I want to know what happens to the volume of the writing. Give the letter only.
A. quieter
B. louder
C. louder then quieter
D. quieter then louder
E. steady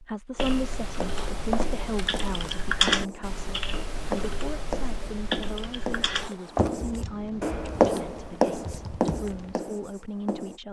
B.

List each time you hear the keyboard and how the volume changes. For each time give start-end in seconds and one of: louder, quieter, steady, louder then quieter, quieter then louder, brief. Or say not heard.
0.3-9.6 louder then quieter.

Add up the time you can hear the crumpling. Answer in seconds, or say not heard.
2 s.